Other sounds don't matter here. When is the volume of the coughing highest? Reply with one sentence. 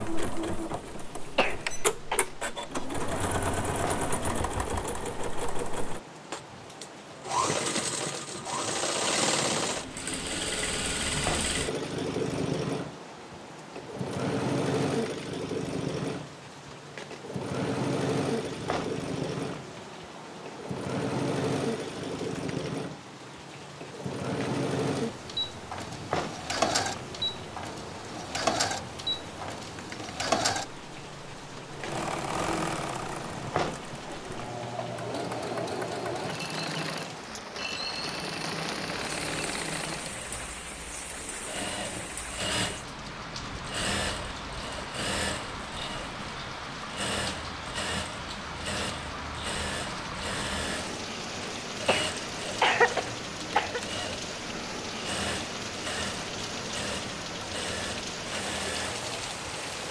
The loudest moment of the coughing is at 53 seconds.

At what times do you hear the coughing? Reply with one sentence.
The coughing can be heard from 1.4 to 2.2 s and from 51.9 to 53.8 s.